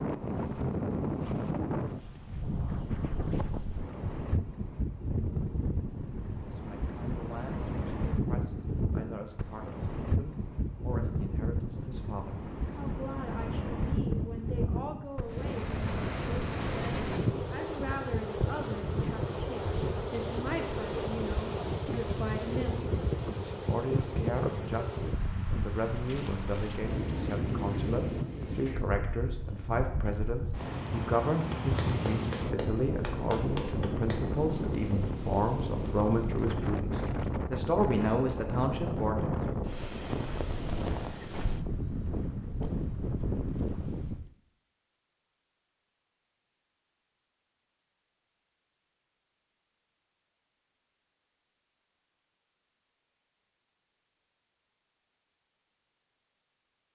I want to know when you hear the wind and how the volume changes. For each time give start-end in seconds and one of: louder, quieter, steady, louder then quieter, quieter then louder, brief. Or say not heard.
0.0-44.3 steady.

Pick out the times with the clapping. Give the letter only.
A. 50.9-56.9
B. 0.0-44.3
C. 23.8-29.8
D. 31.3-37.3
D.